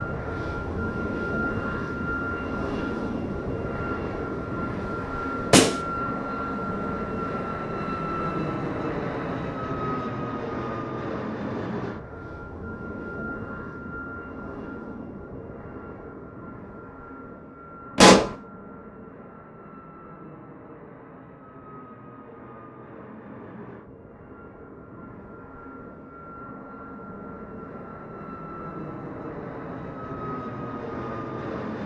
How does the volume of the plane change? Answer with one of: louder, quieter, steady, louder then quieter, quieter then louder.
quieter then louder.